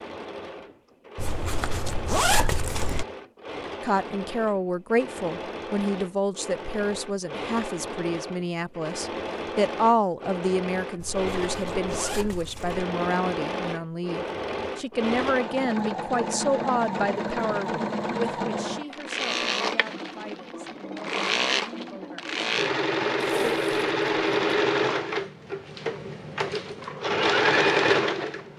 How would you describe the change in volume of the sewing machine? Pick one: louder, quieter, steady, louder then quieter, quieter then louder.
louder.